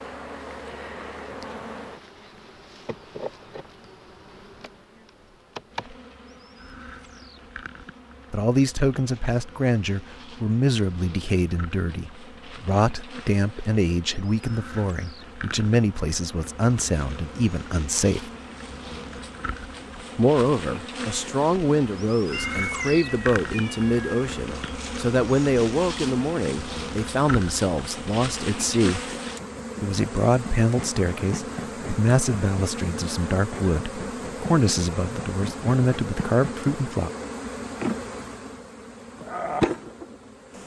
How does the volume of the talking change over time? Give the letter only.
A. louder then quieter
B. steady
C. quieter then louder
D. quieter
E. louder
B.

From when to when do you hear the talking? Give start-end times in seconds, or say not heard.
8.3-18.3, 20.1-29.0, 29.8-37.1.